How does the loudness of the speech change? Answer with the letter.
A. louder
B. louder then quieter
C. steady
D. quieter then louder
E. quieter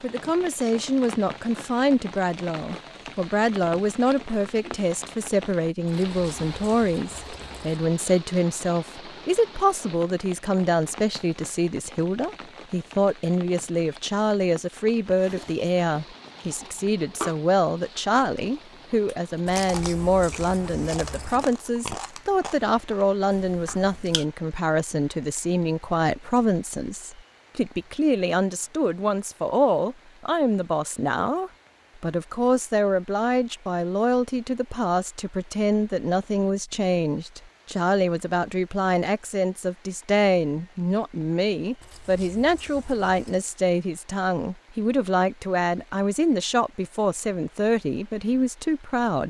C.